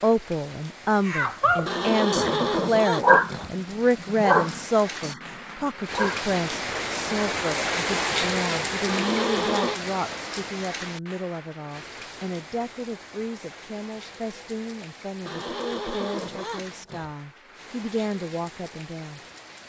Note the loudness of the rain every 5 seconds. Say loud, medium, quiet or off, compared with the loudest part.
quiet, loud, medium, quiet.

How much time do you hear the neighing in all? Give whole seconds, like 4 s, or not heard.
5 s.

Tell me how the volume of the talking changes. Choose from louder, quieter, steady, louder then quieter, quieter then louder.
quieter.